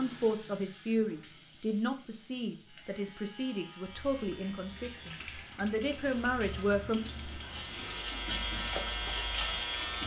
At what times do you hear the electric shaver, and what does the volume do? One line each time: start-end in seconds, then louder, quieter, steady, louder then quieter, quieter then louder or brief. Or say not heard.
2.6-10.0 louder.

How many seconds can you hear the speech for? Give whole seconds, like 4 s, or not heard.
7 s.